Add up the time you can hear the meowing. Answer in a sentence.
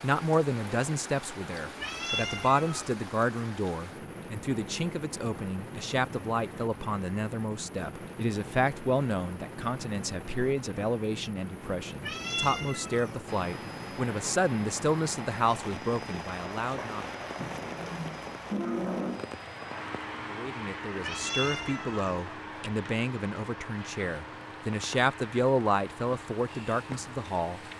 The meowing can be heard for 4 seconds in total.